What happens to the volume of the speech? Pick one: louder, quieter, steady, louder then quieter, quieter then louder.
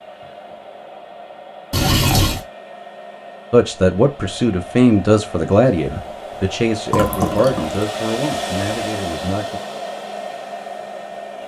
quieter.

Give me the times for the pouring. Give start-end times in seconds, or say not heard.
1.7-2.4, 6.9-8.7.